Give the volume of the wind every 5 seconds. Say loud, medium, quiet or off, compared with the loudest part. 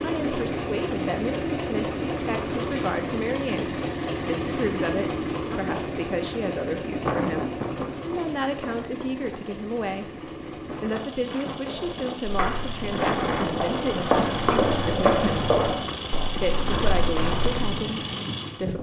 off, loud, loud, loud.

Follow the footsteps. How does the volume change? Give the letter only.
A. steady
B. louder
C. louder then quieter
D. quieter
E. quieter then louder
C.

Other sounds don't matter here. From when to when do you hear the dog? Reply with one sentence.
The dog can't be heard in this clip.